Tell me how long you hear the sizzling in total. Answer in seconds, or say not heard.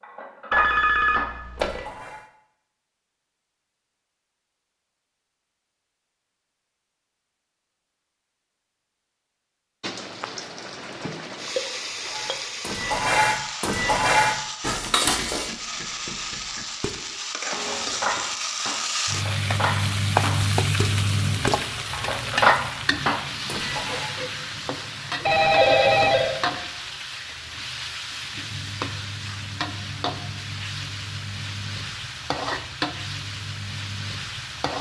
25 s.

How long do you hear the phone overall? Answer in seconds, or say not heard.
3 s.